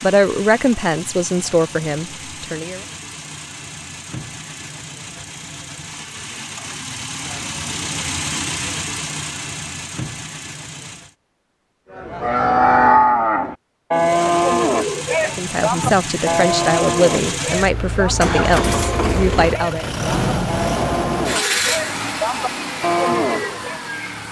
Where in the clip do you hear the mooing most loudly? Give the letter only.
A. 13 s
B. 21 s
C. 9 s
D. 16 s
A.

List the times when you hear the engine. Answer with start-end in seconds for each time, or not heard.
0.0-11.2, 13.9-24.2.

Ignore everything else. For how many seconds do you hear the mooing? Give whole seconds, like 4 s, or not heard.
12 s.